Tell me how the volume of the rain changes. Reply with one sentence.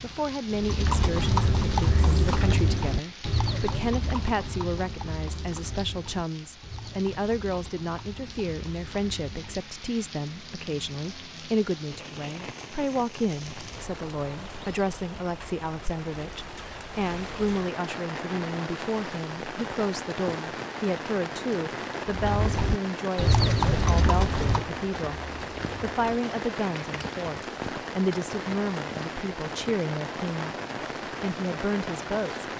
The loudness of the rain goes up.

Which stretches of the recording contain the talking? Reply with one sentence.
You can hear the talking from 0.0 to 25.2 s, from 25.8 to 30.6 s and from 31.2 to 32.5 s.